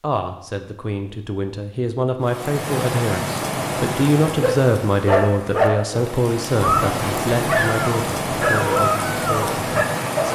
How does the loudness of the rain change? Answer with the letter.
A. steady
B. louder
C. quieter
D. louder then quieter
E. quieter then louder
E.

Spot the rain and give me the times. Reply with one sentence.
The rain can be heard from 2.2 to 10.3 s.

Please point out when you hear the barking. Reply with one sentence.
You can hear the barking from 4.2 to 10.3 s.